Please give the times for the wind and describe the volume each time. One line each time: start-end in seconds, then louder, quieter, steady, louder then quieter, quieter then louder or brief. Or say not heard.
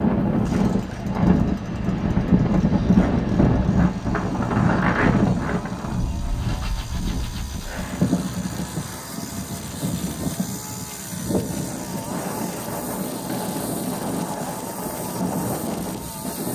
0.0-16.5 quieter.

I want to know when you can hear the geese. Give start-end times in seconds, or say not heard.
not heard.